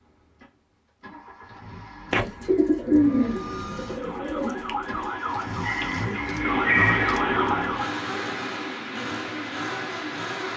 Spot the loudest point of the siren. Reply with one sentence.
The loudest moment of the siren is at 7 seconds.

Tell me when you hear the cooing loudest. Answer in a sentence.
The volume of the cooing peaks at 3 seconds.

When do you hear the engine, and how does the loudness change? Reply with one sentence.
You can hear the engine from 0.0 to 10.5 s, getting louder.